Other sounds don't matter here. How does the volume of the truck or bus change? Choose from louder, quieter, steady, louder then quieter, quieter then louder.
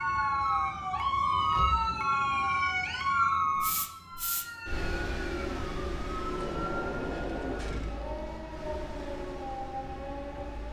quieter.